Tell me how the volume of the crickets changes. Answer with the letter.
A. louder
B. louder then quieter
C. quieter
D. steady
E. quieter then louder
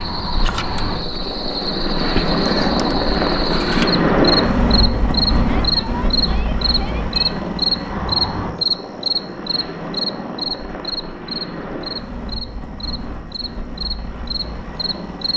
B.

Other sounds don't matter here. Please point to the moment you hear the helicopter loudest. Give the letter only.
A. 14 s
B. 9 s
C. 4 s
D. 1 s
C.